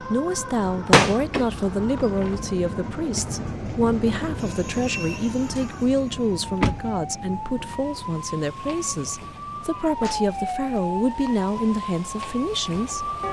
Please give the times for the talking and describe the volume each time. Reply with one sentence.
The talking can be heard from 0.0 to 13.1 s, at a steady volume.